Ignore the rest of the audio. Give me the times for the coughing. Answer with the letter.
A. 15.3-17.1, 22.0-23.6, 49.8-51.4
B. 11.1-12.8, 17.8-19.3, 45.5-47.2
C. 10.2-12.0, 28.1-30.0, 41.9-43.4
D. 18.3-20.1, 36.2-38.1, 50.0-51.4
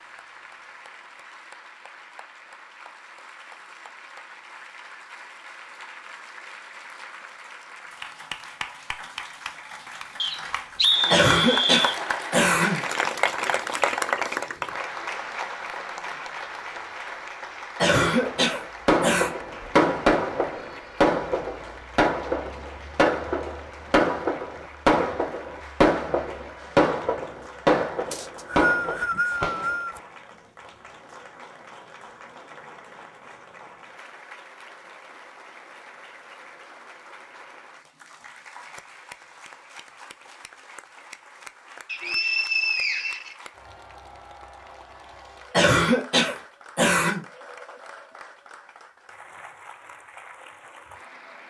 B.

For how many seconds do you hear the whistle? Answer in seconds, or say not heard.
5 s.